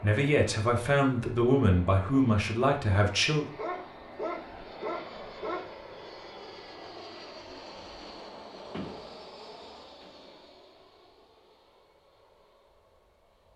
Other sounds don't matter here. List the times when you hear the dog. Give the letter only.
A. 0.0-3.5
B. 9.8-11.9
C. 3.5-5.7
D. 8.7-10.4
C.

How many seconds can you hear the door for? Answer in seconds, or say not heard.
2 s.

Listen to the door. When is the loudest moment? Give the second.
9 s.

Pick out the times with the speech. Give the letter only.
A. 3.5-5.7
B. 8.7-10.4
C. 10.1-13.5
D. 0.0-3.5
D.